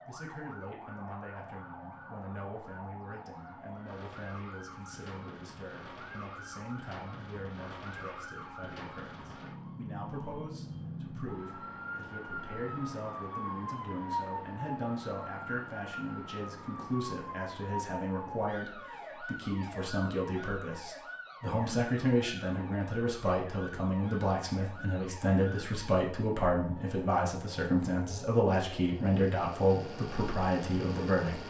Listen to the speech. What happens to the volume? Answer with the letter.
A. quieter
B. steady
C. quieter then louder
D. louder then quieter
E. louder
E.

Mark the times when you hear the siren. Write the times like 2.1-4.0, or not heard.
0.0-31.4.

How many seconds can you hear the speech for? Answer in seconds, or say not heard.
31 s.